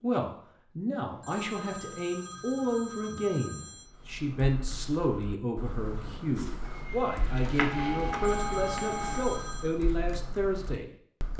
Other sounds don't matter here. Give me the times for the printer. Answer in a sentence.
The printer can be heard from 6.7 to 9.4 s.